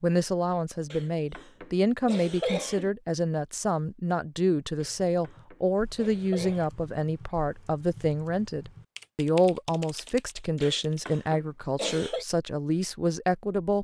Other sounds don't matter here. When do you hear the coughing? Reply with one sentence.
You can hear the coughing from 0.9 to 2.9 s, from 4.8 to 6.7 s and from 10.6 to 12.2 s.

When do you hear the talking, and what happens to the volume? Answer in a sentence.
You can hear the talking from 0.0 to 13.7 s, at a steady volume.